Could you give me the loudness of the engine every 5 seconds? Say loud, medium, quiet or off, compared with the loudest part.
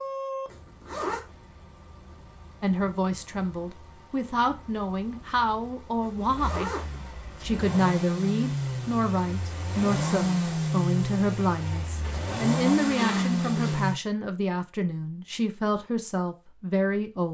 quiet, medium, loud, off.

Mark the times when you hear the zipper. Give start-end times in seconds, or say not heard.
0.5-1.2, 6.0-7.0, 12.0-13.8.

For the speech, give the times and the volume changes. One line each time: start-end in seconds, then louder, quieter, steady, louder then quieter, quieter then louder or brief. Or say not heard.
2.6-17.2 steady.